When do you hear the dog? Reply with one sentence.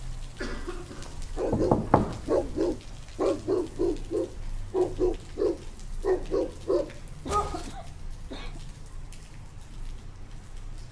The dog can be heard from 1.4 to 7.8 s.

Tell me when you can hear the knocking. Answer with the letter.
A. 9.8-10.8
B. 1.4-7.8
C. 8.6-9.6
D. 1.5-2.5
D.